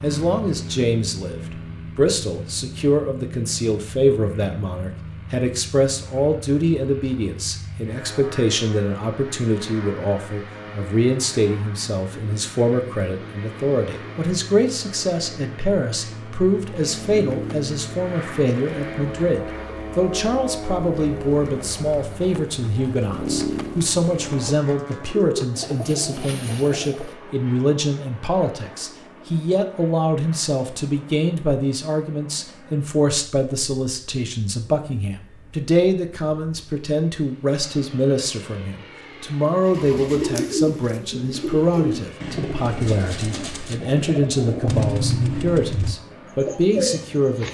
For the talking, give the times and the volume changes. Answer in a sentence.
You can hear the talking from 0.0 to 47.4 s, at a steady volume.